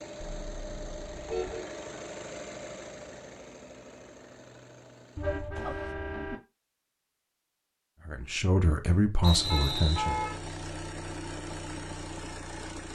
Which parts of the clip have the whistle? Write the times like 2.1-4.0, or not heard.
9.2-10.1.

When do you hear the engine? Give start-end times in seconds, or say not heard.
0.0-6.0, 9.2-12.8.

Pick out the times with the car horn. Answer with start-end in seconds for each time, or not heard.
0.2-1.6, 5.2-6.4, 9.5-10.3.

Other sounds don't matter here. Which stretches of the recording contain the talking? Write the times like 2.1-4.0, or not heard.
8.1-10.2.